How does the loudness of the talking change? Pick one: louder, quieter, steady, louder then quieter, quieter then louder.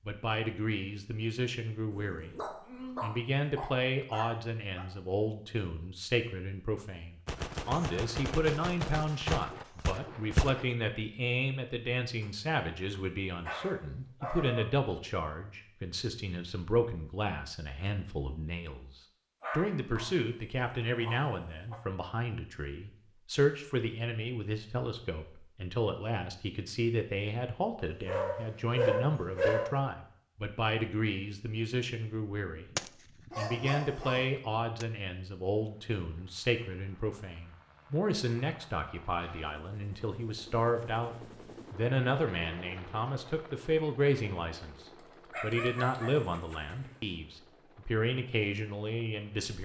steady.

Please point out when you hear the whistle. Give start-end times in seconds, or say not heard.
not heard.